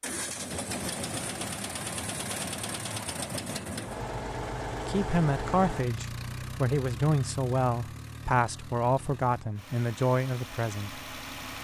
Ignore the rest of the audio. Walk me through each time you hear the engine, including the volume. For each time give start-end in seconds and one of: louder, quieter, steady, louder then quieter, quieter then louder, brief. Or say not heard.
0.0-11.5 quieter.